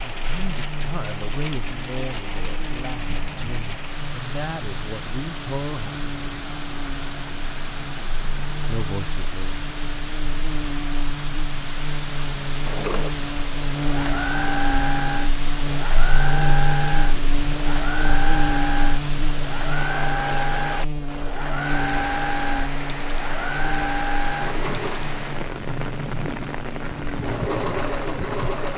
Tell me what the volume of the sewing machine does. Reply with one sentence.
The volume of the sewing machine stays about the same.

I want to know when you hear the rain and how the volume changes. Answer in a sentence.
The rain can be heard from 0.0 to 28.7 s, at a steady volume.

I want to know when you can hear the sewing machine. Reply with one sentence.
You can hear the sewing machine from 12.6 to 28.7 s.